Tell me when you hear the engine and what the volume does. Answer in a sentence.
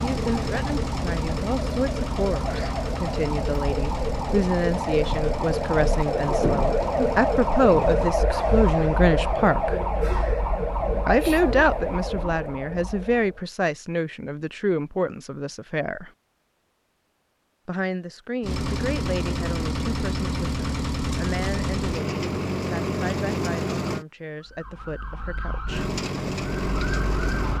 The engine can be heard from 0.0 to 8.2 s, getting quieter; from 18.4 to 24.1 s, at a steady volume; and briefly from 25.6 to 27.5 s.